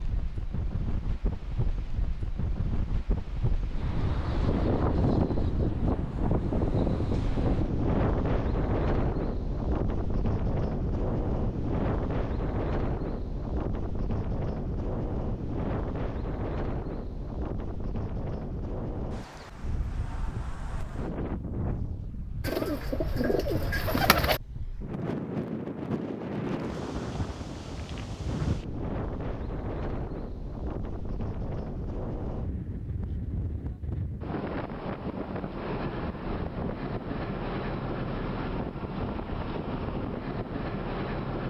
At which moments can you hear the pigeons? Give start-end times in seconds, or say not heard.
22.4-24.4.